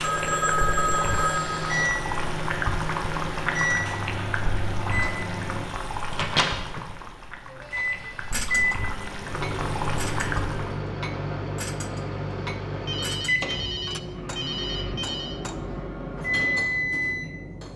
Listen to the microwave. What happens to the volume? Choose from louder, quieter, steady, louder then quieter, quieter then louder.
steady.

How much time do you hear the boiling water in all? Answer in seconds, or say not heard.
11 s.